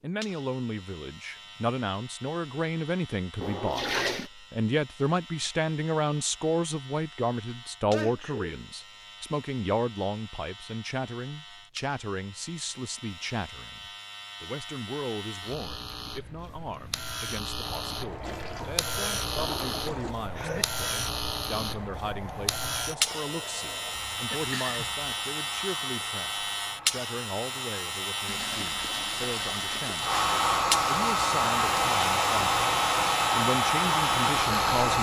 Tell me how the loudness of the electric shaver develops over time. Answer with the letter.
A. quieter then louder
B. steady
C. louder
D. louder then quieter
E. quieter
C.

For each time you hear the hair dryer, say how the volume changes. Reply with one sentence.
You can hear the hair dryer from 17.6 to 34.9 s, getting louder.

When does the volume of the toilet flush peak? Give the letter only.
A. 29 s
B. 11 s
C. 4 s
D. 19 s
C.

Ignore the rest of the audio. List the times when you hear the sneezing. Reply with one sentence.
The sneezing can be heard from 7.9 to 8.6 s, from 20.4 to 20.8 s and from 23.9 to 25.0 s.